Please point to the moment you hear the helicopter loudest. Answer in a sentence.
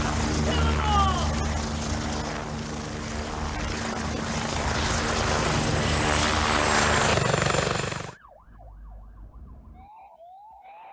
The loudest moment of the helicopter is at 7 seconds.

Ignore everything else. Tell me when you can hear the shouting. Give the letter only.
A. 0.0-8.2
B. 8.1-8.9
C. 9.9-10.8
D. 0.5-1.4
D.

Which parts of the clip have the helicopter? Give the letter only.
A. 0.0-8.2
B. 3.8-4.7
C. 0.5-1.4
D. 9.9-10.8
A.